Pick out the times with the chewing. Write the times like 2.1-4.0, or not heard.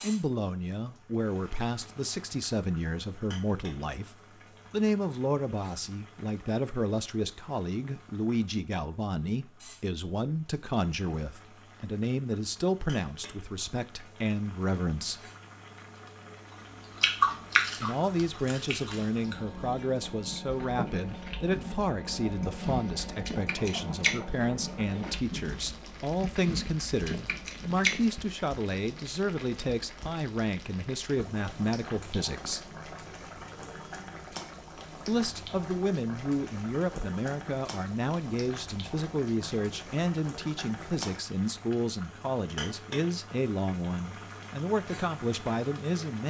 16.9-28.0.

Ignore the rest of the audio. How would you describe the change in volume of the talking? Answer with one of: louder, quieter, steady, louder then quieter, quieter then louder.
steady.